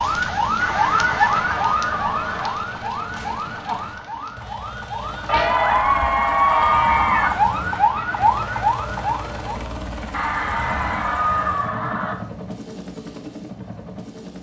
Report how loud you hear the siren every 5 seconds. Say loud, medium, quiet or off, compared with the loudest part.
loud, loud, off.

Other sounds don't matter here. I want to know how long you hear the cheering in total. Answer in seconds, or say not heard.
6 s.